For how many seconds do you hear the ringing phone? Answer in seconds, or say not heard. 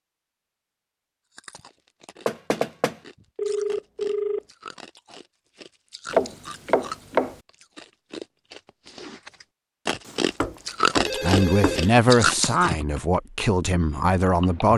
3 s.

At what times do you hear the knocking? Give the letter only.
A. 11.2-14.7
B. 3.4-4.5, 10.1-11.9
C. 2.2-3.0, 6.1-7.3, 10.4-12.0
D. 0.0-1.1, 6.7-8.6
C.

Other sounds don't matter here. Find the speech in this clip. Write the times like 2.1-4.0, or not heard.
11.2-14.7.